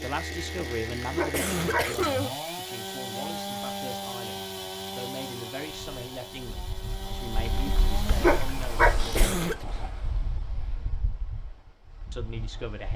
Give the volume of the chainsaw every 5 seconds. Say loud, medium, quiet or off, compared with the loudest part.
loud, loud, off.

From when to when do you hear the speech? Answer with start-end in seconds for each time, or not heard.
0.0-9.8, 12.1-12.9.